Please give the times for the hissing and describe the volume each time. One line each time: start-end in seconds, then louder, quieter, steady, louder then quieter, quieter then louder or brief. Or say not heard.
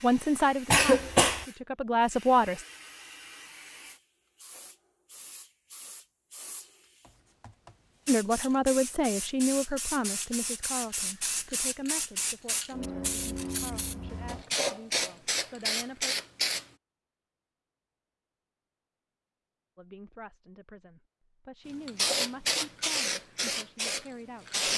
0.0-16.6 louder
21.9-24.7 brief.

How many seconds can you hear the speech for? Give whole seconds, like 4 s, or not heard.
16 s.